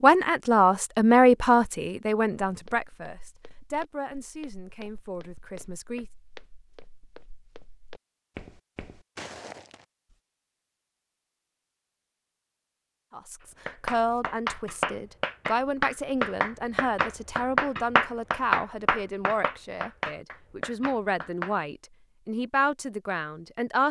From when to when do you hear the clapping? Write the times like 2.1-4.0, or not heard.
13.7-21.6.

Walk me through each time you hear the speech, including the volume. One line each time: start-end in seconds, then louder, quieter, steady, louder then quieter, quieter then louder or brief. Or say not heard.
0.0-6.0 quieter
13.1-23.8 steady.